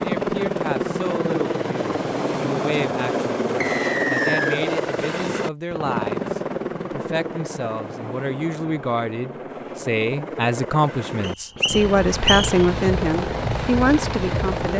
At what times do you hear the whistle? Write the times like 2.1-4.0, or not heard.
3.6-4.6, 11.2-12.5.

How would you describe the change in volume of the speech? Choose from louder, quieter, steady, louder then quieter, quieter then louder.
louder.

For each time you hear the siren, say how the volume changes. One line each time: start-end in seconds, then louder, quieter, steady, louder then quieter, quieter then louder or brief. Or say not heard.
not heard.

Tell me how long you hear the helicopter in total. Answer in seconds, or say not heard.
15 s.